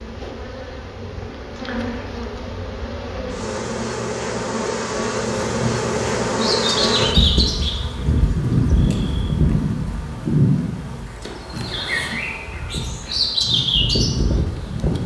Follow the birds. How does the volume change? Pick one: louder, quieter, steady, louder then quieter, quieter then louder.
quieter then louder.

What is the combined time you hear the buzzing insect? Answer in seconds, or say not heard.
15 s.